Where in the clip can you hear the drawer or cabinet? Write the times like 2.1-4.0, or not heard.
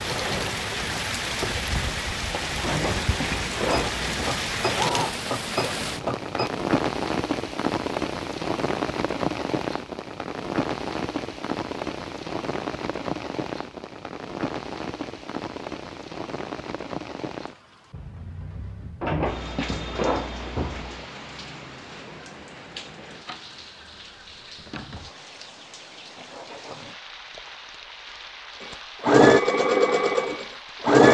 2.6-4.0, 19.0-21.1.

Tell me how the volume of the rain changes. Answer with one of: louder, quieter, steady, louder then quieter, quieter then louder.
quieter.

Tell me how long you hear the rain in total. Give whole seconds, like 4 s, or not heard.
31 s.